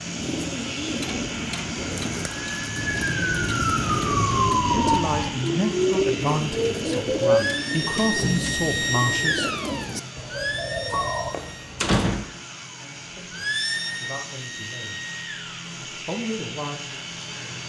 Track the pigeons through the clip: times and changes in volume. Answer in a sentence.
The pigeons can be heard from 0.0 to 11.3 s, at a steady volume.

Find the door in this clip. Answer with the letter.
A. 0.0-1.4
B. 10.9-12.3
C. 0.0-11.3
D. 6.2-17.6
B.